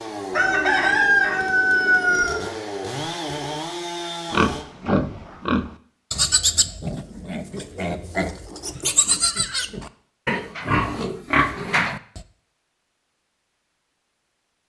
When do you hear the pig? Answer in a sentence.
You can hear the pig from 4.3 to 12.2 s.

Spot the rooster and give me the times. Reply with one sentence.
You can hear the rooster from 0.3 to 2.4 s.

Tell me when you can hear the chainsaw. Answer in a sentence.
The chainsaw can be heard from 0.0 to 4.7 s.